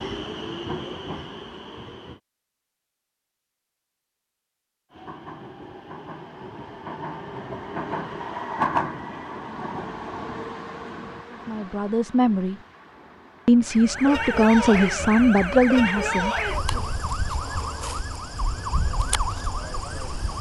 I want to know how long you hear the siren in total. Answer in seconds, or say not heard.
7 s.